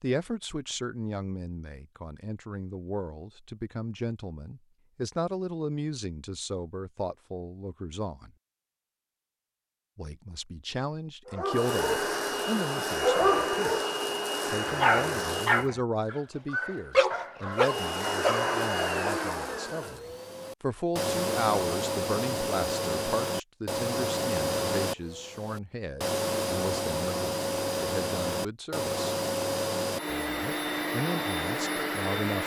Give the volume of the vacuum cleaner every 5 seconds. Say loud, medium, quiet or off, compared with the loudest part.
off, off, loud, loud, loud, loud, loud.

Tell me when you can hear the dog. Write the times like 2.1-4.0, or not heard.
11.2-12.1, 13.0-13.9, 14.7-19.1.